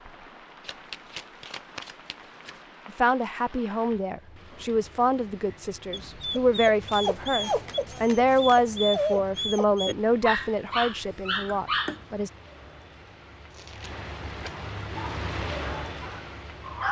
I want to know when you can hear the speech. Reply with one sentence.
You can hear the speech from 2.9 to 12.3 s.